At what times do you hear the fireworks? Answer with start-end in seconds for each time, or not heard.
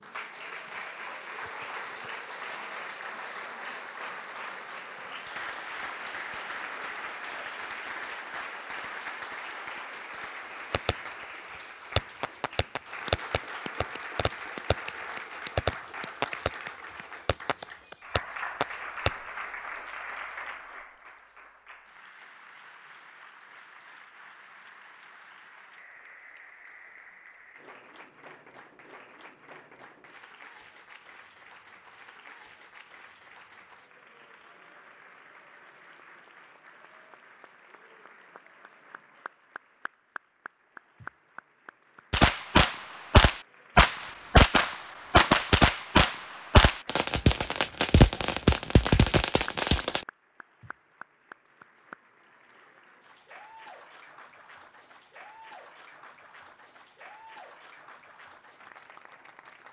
10.4-19.5, 42.1-50.0.